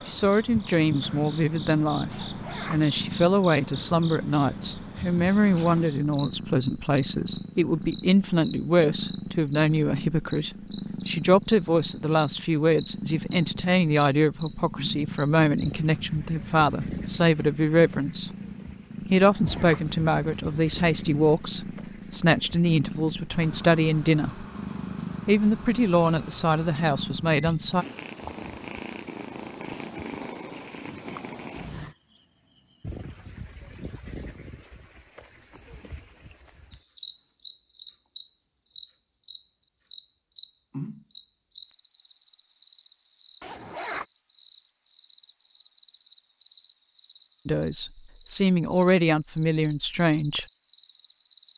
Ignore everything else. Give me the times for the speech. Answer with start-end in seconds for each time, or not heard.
0.1-18.3, 19.1-24.4, 25.2-27.9, 47.5-50.5.